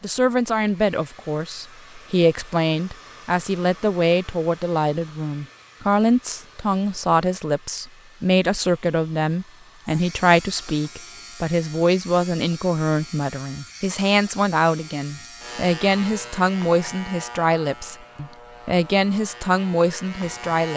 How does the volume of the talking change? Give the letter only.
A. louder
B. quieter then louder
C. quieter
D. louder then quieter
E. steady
E.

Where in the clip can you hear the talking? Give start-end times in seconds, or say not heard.
0.0-20.7.